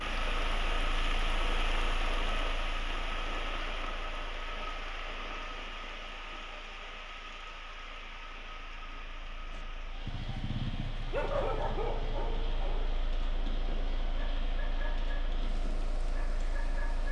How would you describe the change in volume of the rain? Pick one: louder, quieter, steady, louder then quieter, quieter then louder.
quieter.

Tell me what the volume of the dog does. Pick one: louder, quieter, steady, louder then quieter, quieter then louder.
quieter.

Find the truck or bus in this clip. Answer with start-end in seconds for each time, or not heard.
0.0-17.0.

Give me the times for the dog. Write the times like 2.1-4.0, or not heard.
9.5-17.0.